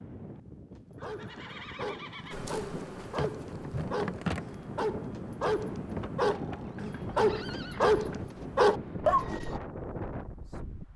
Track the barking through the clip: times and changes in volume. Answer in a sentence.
You can hear the barking from 0.7 to 9.6 s, getting louder.